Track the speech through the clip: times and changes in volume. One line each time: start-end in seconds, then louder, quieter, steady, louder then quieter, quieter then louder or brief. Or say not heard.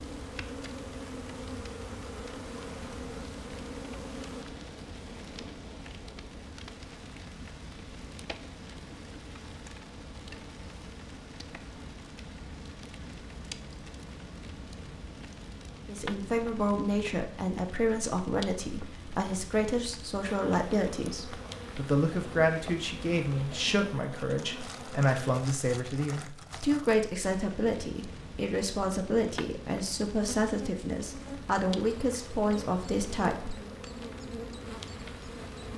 15.8-33.5 steady.